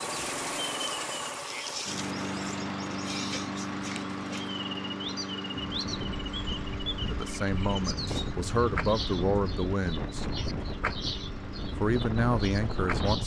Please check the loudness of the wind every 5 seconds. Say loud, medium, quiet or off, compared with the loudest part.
off, loud, loud.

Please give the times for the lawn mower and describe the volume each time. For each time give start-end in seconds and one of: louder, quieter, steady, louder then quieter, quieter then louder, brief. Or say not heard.
0.0-13.0 quieter.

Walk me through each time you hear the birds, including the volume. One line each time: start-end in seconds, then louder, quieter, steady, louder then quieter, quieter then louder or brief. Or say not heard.
0.0-13.2 steady.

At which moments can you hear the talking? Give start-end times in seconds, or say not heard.
7.1-10.2, 11.8-13.2.